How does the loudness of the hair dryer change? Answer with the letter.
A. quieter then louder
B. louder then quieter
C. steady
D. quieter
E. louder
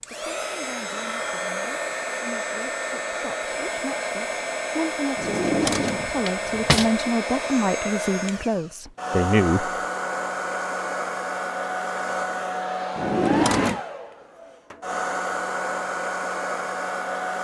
C.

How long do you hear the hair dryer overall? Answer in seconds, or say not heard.
17 s.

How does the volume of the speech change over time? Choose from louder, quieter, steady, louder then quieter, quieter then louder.
louder.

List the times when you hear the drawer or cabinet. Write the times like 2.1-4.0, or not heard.
5.2-6.9, 12.9-13.8.